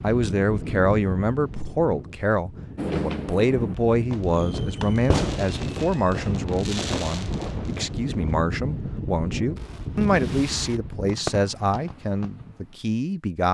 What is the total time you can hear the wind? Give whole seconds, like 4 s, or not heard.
11 s.